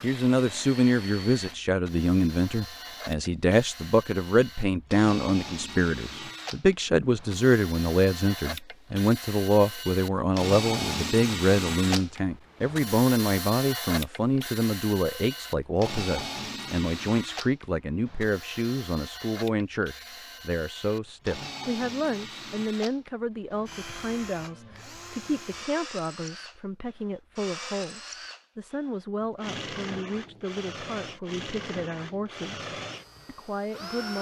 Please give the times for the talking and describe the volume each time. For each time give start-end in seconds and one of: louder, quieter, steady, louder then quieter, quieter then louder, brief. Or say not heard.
0.0-34.1 quieter.